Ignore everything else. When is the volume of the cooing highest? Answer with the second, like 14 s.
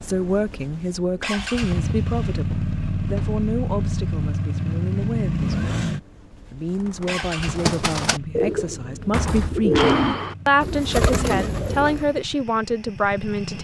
10 s.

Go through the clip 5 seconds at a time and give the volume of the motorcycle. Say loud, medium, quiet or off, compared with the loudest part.
loud, loud, medium.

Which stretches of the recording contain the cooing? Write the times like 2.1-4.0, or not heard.
6.7-12.2.